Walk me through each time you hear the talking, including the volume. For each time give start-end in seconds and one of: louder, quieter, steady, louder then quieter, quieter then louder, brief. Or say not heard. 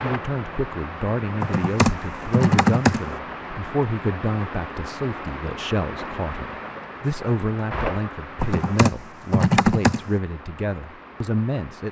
0.0-11.8 steady.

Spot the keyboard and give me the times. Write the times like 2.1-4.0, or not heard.
1.4-3.1, 8.4-10.1.